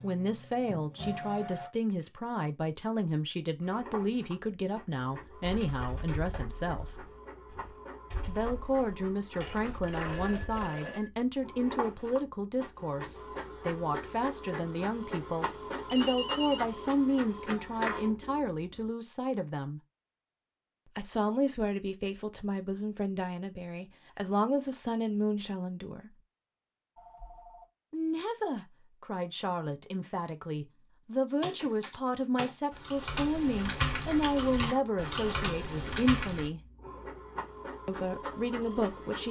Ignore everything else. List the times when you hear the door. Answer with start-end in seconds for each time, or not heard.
not heard.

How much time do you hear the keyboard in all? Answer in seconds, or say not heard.
10 s.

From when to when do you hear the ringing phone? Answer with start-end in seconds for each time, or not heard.
9.4-11.1, 15.8-16.6, 26.9-27.6.